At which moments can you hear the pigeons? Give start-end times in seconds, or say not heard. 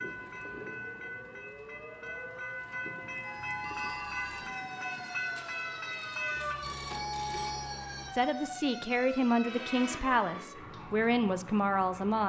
not heard.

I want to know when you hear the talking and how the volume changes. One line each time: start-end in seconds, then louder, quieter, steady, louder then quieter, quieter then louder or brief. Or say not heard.
8.1-12.2 steady.